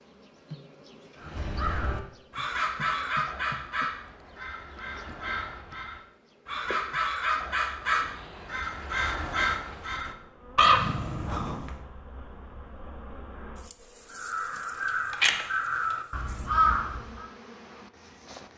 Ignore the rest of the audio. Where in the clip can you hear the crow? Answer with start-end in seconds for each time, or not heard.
1.2-11.7, 14.1-17.2.